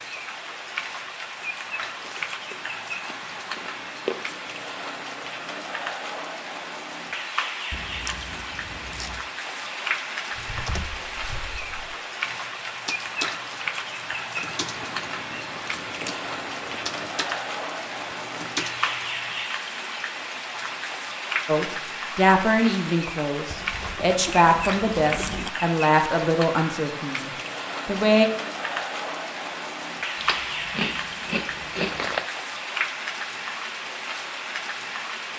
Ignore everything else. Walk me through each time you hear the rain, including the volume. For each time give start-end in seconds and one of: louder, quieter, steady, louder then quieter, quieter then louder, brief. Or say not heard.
0.0-35.3 steady.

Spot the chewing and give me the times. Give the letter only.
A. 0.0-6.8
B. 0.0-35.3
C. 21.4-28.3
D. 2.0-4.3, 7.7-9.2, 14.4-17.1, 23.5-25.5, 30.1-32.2
D.